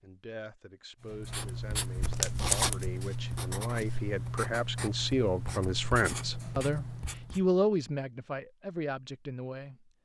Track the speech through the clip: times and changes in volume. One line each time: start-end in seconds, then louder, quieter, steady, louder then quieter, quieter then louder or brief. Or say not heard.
0.0-9.9 louder then quieter.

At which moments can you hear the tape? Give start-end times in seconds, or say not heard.
1.9-2.9.